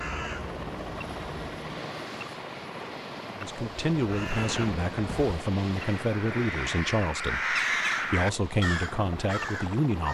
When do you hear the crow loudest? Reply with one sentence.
The volume of the crow peaks at 8 seconds.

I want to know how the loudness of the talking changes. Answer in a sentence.
The loudness of the talking stays about the same.